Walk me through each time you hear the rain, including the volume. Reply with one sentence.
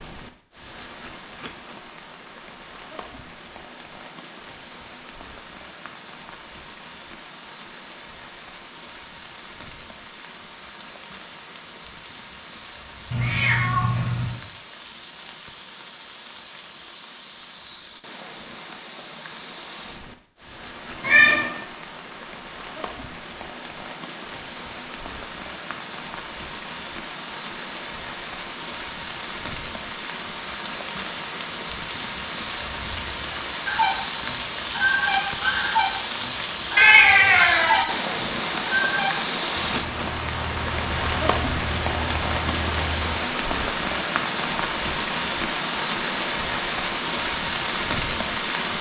The rain can be heard from 0.0 to 48.7 s, getting louder.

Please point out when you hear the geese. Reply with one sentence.
The geese can be heard from 33.6 to 43.0 s.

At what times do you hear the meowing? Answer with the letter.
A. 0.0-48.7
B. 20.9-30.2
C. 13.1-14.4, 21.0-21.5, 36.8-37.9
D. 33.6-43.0
C.